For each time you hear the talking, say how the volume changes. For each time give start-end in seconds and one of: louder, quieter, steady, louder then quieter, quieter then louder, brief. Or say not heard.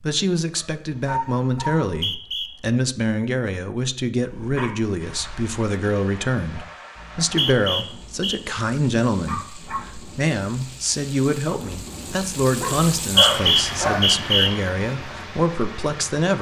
0.0-16.3 steady.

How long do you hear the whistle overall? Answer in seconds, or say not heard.
4 s.